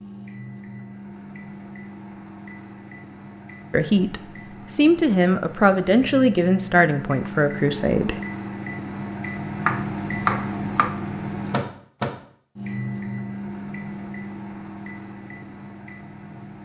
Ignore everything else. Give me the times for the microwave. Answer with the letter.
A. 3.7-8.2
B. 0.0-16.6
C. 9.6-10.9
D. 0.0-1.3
B.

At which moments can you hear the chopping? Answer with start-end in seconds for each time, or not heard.
9.6-10.9.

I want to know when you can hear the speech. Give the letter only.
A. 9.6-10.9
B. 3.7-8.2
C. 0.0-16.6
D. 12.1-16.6
B.